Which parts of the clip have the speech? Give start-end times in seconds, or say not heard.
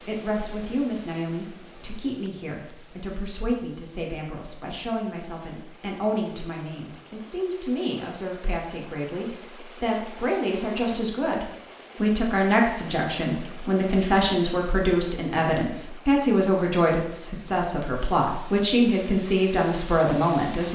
0.0-20.7.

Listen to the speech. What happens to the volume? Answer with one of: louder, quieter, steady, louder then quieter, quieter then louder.
louder.